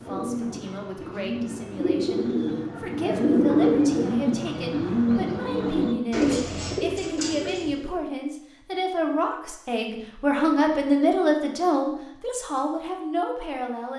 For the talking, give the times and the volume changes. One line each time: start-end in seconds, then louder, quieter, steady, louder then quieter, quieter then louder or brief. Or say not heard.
0.1-13.9 louder.